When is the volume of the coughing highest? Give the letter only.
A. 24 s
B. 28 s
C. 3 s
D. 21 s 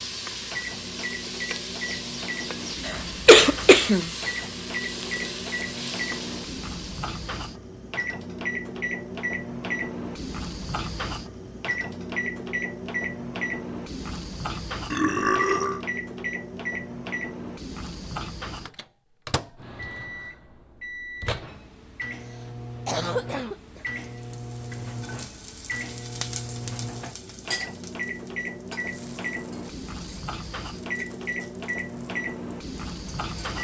C.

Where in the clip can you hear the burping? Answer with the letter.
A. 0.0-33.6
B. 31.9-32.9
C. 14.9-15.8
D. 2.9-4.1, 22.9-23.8
C.